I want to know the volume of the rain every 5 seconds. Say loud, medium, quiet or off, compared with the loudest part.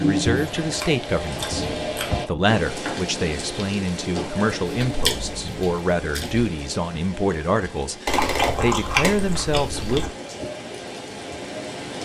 loud, medium, medium.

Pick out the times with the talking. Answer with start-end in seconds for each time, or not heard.
0.0-10.1.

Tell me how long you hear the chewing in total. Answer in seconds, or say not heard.
6 s.